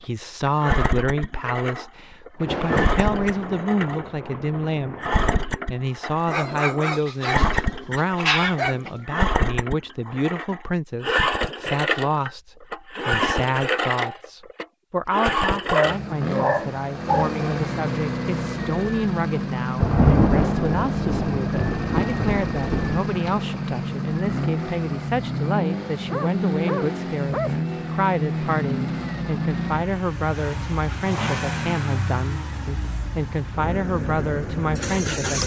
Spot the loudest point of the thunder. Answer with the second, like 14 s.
20 s.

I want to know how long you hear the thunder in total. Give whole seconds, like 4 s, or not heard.
6 s.